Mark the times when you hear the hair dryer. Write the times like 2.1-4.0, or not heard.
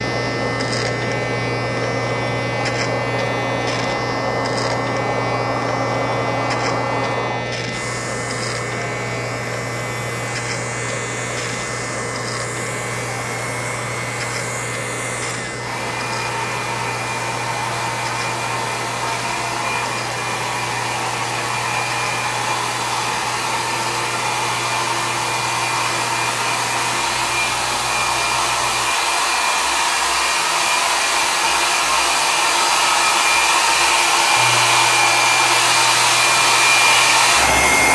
0.0-37.9.